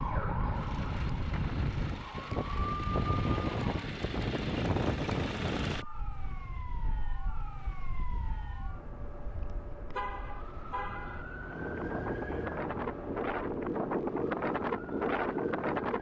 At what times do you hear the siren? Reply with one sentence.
The siren can be heard from 0.0 to 3.9 s and from 5.7 to 15.9 s.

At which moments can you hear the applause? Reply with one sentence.
You can't hear the applause here.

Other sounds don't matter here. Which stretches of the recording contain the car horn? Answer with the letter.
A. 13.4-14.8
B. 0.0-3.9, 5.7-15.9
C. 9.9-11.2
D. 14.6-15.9
C.